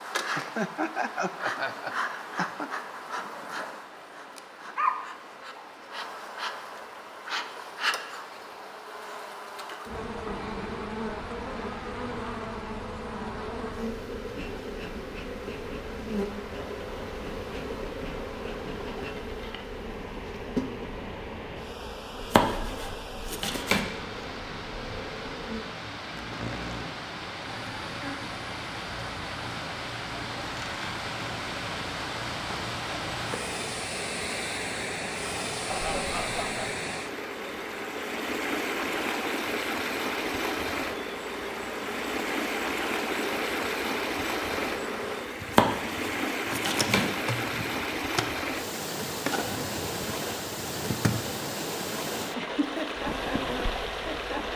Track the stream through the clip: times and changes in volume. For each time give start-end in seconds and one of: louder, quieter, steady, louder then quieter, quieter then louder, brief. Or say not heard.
0.0-54.5 louder.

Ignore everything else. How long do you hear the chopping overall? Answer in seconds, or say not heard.
3 s.